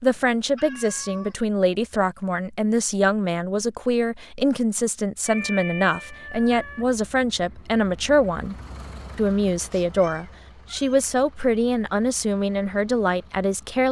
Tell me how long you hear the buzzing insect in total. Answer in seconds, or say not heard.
not heard.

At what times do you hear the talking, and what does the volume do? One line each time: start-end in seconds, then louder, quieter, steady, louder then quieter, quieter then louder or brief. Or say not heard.
0.0-8.6 steady
9.2-13.8 steady.